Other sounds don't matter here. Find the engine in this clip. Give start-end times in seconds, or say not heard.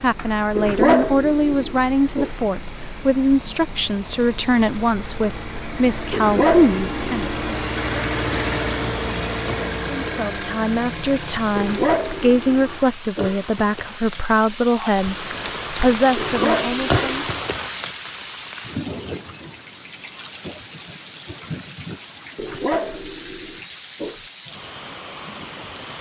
0.0-13.0.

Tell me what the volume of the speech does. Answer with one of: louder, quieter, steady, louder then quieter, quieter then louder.
steady.